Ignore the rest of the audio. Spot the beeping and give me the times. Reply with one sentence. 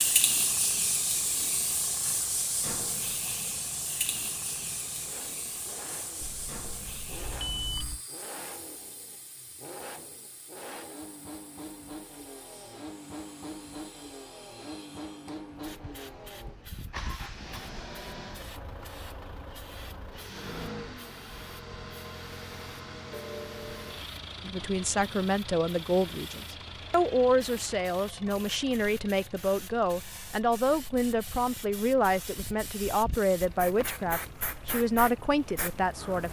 You can hear the beeping from 6.2 to 8.0 s.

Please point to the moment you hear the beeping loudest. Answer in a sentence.
The loudest moment of the beeping is at 8 seconds.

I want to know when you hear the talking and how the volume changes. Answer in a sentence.
The talking can be heard from 24.4 to 36.2 s, at a steady volume.